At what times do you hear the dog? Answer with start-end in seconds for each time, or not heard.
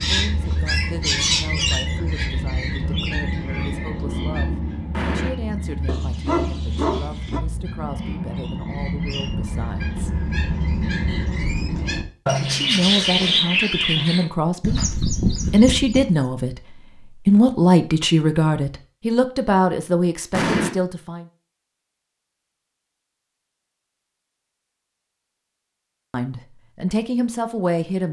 5.8-7.4.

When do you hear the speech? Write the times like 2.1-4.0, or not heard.
0.1-10.1, 12.4-14.8, 15.5-21.2, 26.1-28.0.